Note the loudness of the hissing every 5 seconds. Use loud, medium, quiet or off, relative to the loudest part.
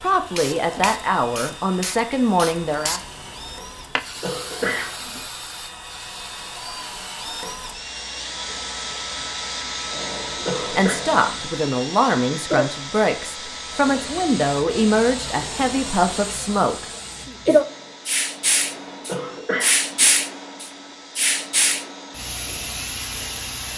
medium, quiet, medium, loud, loud.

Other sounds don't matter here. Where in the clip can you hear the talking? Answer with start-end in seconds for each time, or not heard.
0.0-3.0, 10.6-17.4.